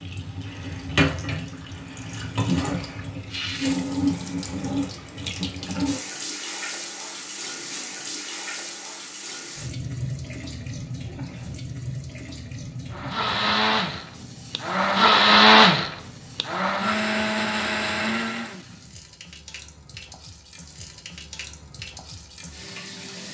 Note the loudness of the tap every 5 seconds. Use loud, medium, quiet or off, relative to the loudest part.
loud, medium, medium, quiet, quiet.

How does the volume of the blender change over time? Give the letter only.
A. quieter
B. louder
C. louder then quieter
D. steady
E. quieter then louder
C.